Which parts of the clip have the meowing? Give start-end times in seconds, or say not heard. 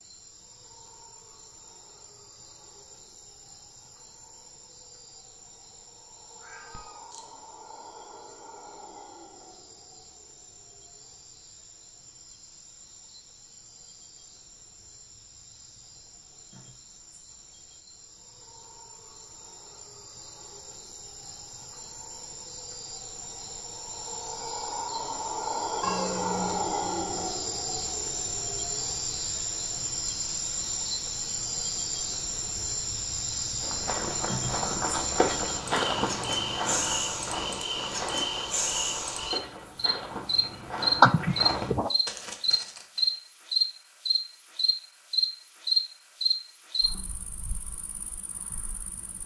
6.4-7.2, 25.8-27.3, 41.0-41.9.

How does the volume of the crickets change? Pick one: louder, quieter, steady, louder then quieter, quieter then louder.
louder.